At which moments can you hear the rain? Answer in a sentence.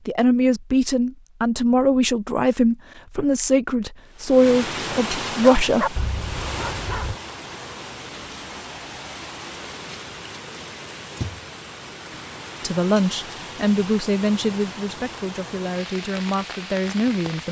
You can hear the rain from 4.0 to 17.4 s.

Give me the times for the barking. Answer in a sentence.
The barking can be heard from 5.6 to 7.2 s.